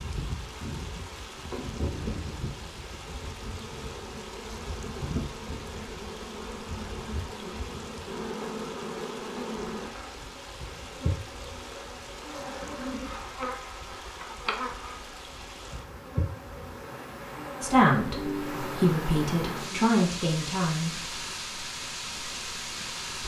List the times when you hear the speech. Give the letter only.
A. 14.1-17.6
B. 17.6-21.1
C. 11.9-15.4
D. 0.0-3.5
B.